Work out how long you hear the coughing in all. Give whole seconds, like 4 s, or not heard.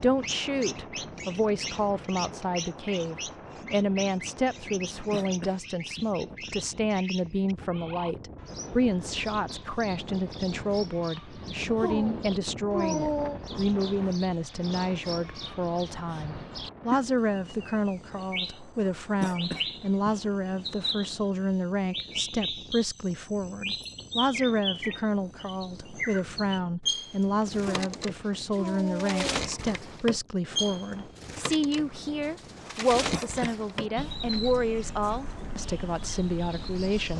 3 s.